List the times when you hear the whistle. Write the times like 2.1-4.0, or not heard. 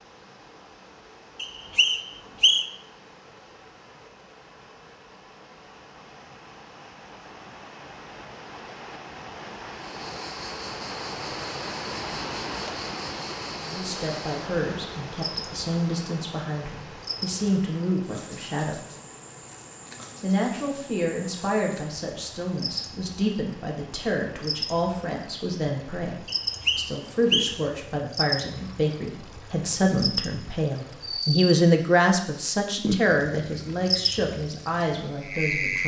1.4-2.7, 26.2-27.6.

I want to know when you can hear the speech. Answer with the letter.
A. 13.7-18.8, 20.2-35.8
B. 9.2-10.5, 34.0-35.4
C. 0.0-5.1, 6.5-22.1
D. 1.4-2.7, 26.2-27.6
A.